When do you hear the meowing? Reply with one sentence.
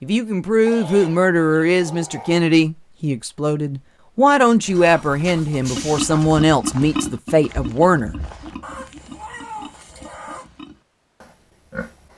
You can't hear the meowing here.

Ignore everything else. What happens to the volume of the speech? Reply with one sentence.
The volume of the speech stays about the same.